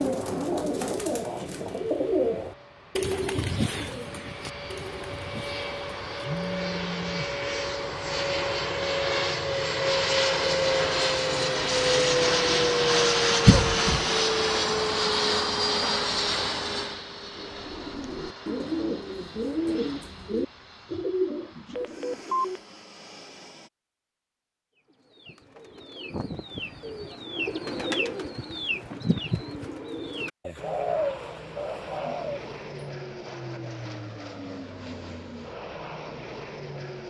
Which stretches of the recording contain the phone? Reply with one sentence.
The phone can be heard from 6.2 to 7.3 s and from 21.8 to 22.6 s.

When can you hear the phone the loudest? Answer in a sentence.
The loudest moment of the phone is at 22 seconds.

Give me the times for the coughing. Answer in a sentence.
The coughing can be heard from 13.4 to 14.0 s.